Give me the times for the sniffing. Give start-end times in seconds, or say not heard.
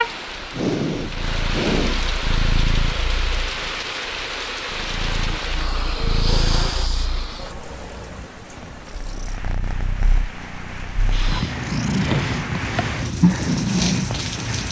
0.5-2.0, 5.2-7.5, 11.1-12.4.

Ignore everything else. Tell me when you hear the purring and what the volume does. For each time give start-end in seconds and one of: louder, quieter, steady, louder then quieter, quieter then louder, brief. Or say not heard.
0.2-14.6 quieter then louder.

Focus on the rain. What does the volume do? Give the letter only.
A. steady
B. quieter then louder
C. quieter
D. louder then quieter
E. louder
B.